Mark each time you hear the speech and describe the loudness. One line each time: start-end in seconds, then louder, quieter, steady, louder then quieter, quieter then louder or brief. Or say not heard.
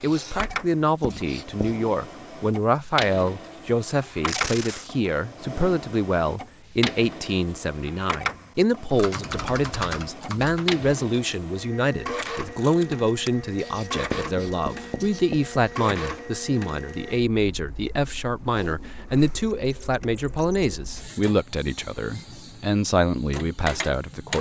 0.0-24.3 steady.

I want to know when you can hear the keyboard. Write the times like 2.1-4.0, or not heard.
8.9-10.8.